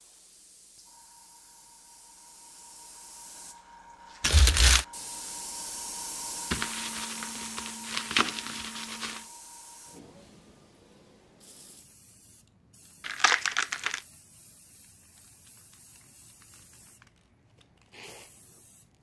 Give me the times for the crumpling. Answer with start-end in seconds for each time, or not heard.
4.2-4.8, 6.5-9.2, 13.0-14.0.